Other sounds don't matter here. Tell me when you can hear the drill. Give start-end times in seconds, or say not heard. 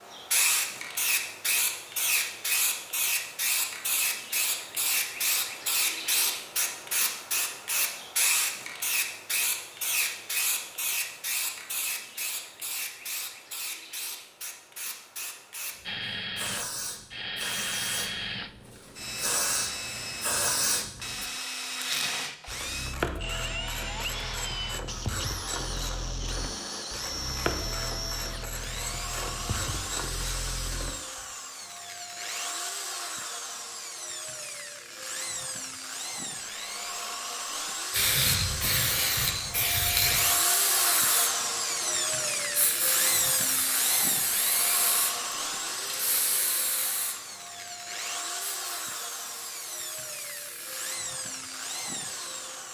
15.8-52.7.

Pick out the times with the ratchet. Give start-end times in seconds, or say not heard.
21.8-31.3.